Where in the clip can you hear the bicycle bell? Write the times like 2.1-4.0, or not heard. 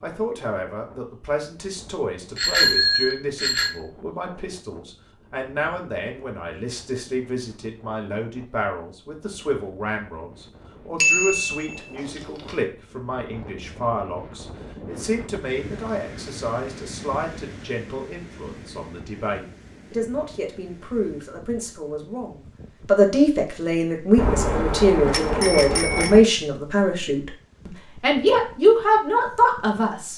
2.4-3.7, 11.0-12.6, 24.1-26.2.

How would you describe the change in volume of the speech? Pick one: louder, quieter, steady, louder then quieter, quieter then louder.
louder.